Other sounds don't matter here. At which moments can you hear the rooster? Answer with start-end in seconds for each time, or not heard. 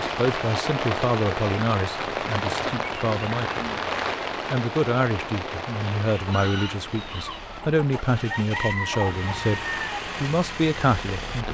6.1-10.0.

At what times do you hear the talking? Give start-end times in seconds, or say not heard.
0.0-3.6, 4.5-11.4.